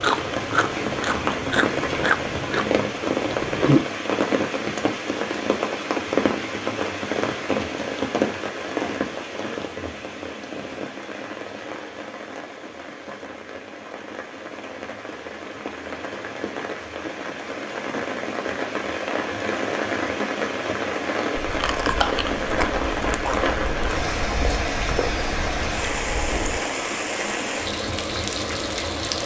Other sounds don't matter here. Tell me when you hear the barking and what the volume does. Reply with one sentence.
The barking can't be heard in this clip.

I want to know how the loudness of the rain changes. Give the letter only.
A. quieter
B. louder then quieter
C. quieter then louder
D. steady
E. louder
C.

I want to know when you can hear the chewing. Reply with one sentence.
The chewing can be heard from 0.0 to 3.9 s and from 21.4 to 26.6 s.